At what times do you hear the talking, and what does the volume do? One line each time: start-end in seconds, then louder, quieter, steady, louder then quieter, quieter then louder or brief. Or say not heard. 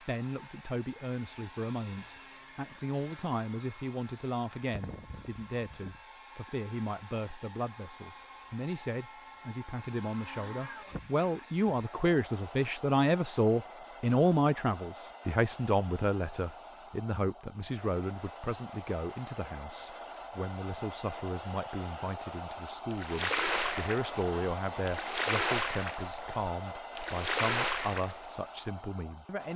0.0-29.5 louder then quieter.